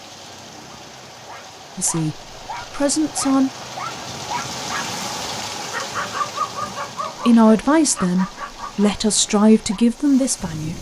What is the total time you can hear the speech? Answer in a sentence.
The speech can be heard for 5 seconds in total.